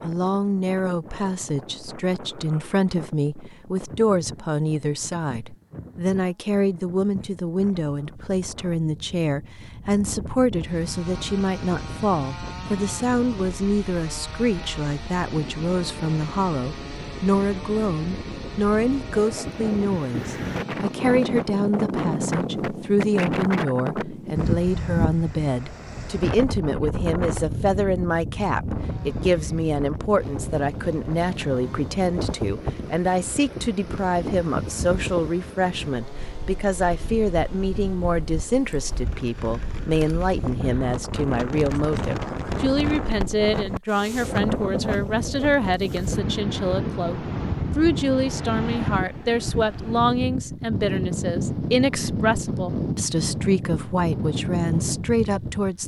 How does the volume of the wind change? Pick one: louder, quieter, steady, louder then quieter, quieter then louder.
louder.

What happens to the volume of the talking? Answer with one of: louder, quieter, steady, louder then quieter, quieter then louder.
steady.